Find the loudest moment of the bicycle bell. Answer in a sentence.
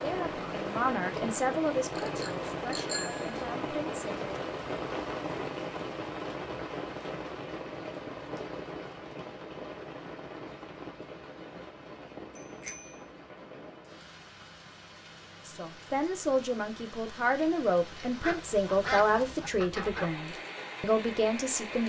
The loudest moment of the bicycle bell is at 3 seconds.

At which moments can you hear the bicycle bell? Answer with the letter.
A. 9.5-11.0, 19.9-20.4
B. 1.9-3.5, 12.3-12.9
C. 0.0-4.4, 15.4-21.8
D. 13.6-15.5
B.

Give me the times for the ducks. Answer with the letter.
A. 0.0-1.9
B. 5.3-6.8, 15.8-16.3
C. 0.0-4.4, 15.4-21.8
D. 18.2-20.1
D.